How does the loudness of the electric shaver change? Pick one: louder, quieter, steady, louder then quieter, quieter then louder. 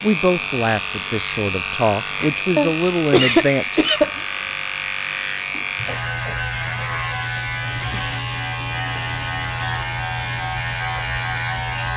steady.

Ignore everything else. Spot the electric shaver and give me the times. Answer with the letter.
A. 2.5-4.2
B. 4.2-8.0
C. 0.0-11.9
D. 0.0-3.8
C.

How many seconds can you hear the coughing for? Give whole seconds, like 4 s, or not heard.
2 s.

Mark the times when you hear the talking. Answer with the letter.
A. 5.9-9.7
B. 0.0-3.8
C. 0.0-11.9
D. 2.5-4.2
B.